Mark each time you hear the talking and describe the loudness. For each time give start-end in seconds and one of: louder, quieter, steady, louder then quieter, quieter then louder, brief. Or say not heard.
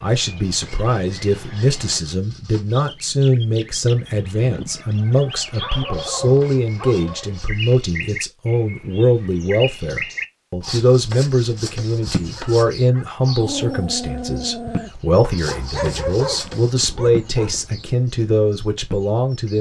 0.0-19.5 steady.